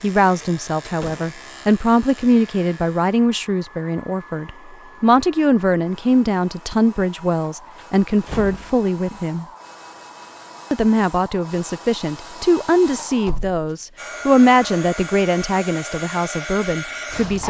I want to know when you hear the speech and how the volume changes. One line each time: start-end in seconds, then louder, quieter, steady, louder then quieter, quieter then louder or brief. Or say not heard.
0.0-9.4 steady
10.7-17.4 louder then quieter.